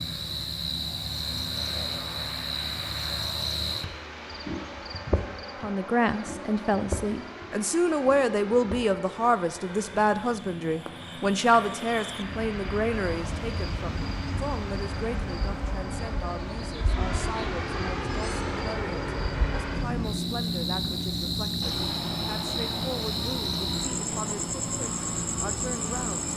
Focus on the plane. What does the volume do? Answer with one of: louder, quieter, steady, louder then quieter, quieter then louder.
louder.